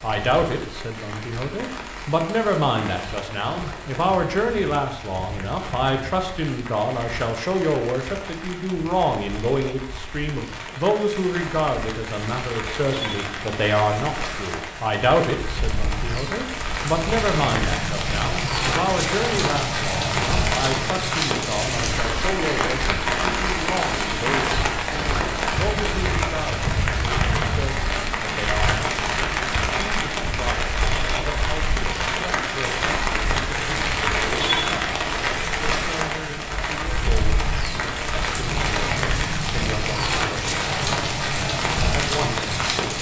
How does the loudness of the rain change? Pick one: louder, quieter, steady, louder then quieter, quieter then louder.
louder.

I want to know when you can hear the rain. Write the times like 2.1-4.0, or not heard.
0.0-42.9.